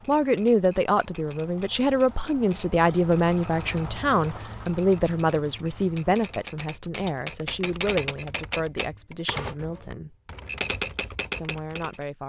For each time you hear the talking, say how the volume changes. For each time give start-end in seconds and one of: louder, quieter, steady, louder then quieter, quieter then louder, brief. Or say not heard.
0.1-10.2 quieter
11.3-12.2 brief.